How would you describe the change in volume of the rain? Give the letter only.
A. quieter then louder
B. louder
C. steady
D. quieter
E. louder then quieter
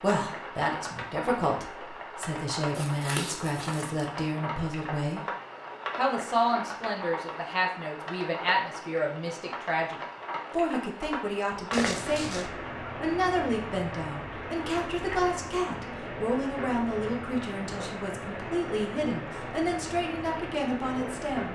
C.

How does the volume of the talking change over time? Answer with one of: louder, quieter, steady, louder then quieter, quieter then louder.
steady.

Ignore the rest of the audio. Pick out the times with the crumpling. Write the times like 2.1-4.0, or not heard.
2.7-4.0, 11.7-12.5.